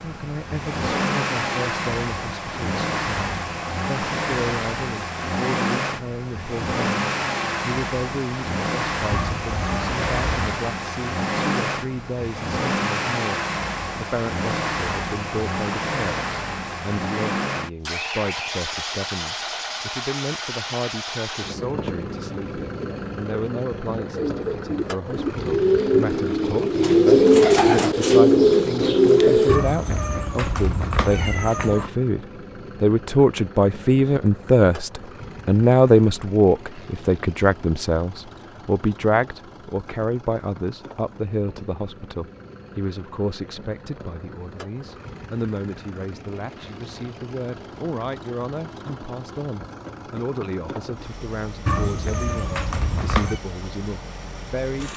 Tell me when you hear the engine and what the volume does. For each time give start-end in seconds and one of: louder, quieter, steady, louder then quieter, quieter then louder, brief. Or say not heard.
0.0-54.9 quieter.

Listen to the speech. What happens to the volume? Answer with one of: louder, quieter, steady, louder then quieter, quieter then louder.
louder then quieter.